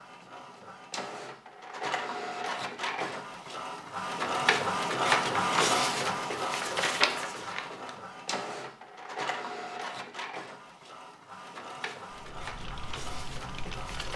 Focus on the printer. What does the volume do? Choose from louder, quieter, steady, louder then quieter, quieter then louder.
louder then quieter.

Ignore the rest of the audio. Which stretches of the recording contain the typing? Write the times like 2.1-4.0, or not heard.
12.1-14.1.